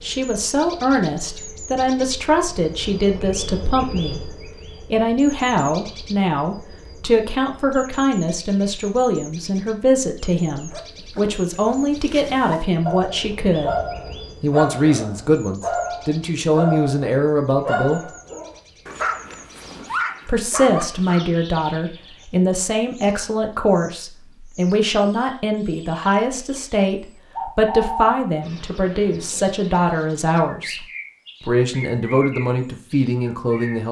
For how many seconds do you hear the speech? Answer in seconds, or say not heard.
30 s.